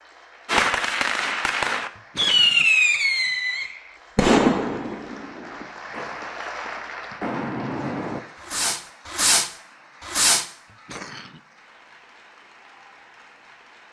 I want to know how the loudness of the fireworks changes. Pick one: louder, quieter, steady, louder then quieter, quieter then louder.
quieter then louder.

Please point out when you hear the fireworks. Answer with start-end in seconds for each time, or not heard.
0.5-10.4.